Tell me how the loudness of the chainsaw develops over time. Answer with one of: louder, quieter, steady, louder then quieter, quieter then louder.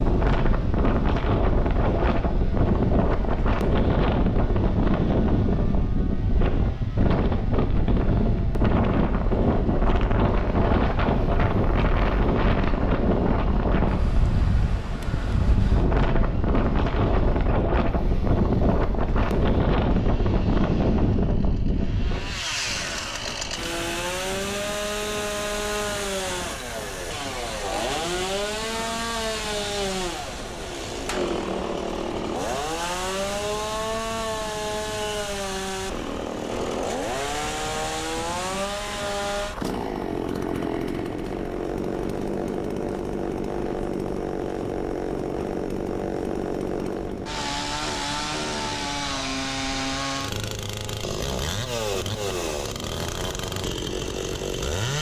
louder.